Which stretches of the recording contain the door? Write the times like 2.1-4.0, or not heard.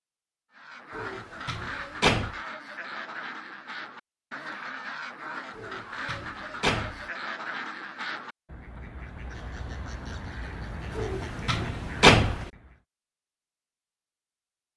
0.9-2.4, 5.5-7.0, 10.9-12.4.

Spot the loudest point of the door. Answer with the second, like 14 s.
12 s.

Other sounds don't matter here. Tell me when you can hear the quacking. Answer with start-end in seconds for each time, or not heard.
0.5-12.8.